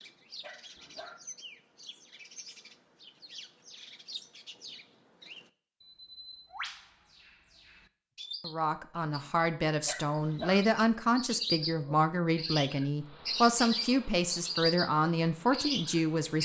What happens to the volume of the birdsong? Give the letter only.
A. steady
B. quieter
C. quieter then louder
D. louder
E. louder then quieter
D.